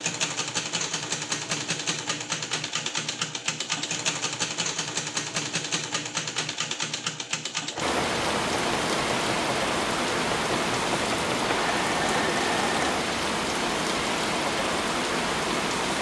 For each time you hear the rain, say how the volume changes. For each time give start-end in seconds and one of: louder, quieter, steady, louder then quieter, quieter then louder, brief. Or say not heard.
7.8-15.9 steady.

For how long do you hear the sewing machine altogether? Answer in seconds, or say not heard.
13 s.